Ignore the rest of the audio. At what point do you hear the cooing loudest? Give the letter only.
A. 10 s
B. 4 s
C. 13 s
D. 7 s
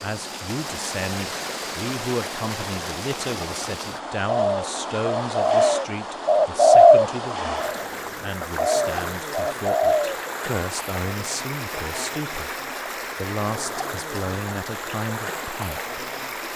D.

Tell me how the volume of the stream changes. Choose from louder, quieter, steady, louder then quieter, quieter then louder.
steady.